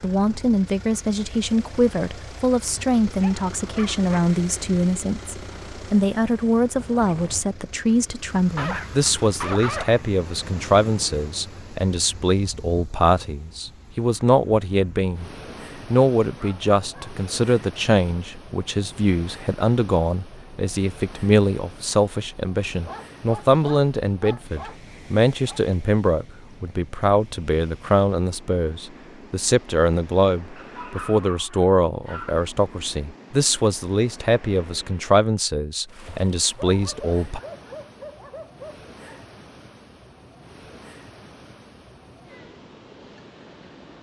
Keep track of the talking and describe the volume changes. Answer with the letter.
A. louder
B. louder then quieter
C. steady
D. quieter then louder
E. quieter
C.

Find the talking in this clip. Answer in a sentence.
The talking can be heard from 0.0 to 15.3 s and from 15.9 to 37.4 s.